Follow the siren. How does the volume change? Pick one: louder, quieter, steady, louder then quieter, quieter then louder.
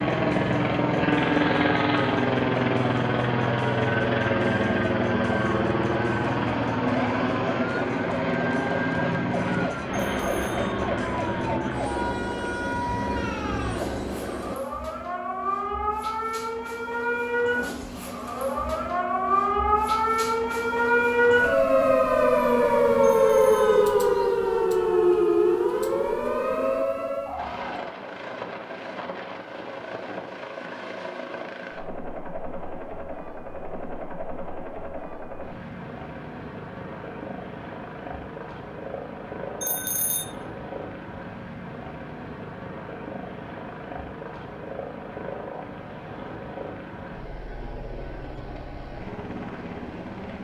louder.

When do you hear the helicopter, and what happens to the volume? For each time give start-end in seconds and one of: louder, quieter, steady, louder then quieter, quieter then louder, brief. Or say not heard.
0.0-14.6 quieter
27.4-50.3 steady.